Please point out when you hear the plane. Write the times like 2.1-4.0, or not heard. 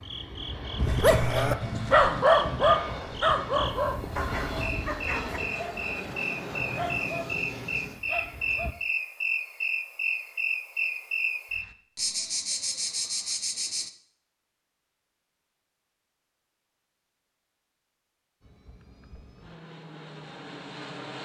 0.0-8.8, 18.4-21.1.